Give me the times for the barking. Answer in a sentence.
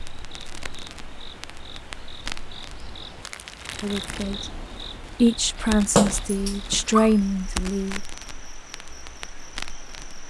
The barking can be heard from 5.5 to 7.1 s.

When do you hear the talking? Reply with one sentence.
The talking can be heard from 3.8 to 8.0 s.